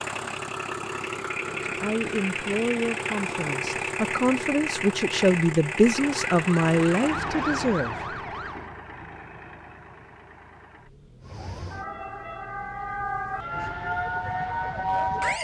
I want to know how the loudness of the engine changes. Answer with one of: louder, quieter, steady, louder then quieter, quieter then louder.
quieter.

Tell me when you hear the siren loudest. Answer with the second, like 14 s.
15 s.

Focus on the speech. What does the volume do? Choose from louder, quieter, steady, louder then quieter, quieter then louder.
louder then quieter.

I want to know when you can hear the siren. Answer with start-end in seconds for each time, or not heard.
6.0-8.7, 11.2-15.3.